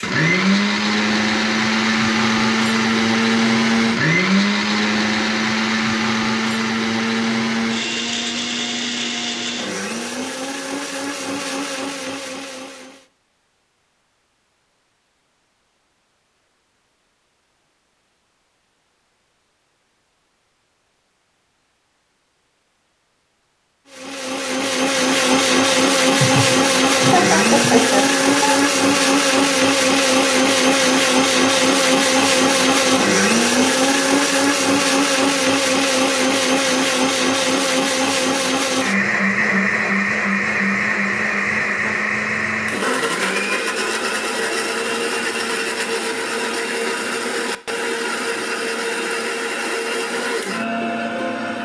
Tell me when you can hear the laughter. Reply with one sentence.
You can hear the laughter from 26.2 to 28.6 s.